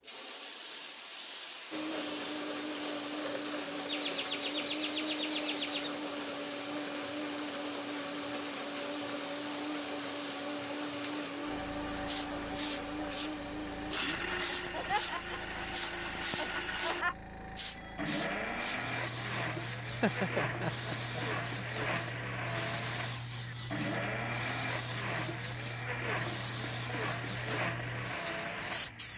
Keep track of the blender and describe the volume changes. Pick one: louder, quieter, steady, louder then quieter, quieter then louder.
steady.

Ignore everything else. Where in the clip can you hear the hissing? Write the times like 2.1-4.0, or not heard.
0.0-29.1.